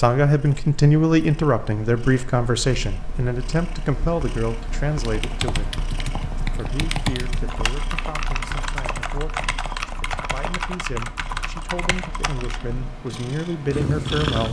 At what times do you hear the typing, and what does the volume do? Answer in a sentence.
The typing can be heard from 5.0 to 12.8 s, at a steady volume.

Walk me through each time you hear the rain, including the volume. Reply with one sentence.
The rain can't be heard in this clip.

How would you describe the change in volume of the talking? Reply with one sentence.
The volume of the talking goes down, then up.